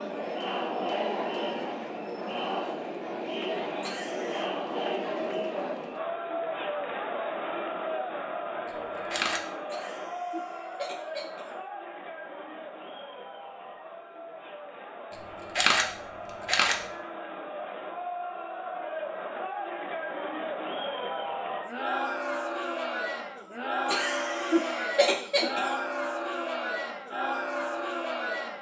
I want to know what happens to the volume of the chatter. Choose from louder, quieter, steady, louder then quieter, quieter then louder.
quieter then louder.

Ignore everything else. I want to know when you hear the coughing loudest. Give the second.
25 s.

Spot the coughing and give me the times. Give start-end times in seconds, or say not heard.
3.8-4.5, 9.7-11.6, 23.9-25.8.